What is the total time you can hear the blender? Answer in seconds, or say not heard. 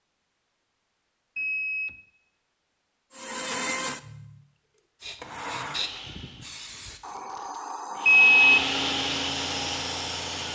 6 s.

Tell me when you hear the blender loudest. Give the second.
9 s.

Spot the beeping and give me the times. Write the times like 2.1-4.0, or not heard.
1.4-2.0, 8.1-8.7.